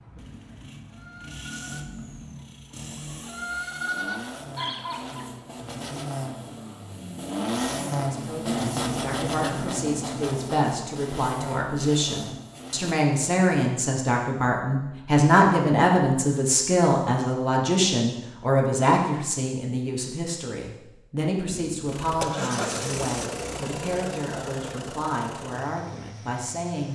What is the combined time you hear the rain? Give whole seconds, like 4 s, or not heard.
not heard.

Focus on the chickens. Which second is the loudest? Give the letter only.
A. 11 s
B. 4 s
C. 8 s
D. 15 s
B.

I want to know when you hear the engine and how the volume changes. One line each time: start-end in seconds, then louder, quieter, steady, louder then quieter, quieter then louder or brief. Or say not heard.
0.0-12.9 louder then quieter
21.4-26.9 quieter.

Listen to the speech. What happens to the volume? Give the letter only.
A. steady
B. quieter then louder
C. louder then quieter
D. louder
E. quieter
C.